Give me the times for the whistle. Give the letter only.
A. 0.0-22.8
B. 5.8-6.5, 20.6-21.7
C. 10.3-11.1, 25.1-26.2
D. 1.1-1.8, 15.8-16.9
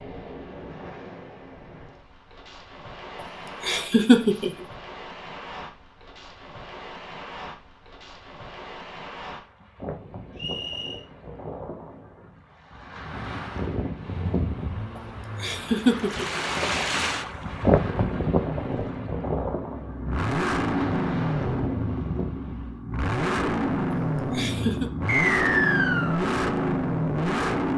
C.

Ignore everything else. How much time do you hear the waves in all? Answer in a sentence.
You can hear the waves for 23 seconds altogether.